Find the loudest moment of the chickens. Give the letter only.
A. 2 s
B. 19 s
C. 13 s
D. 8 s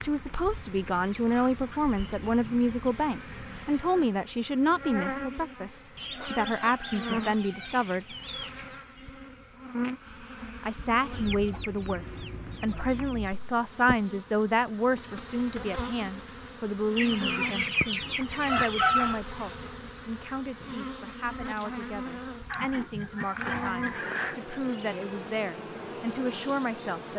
B.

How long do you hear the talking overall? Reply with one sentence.
You can hear the talking for 25 seconds altogether.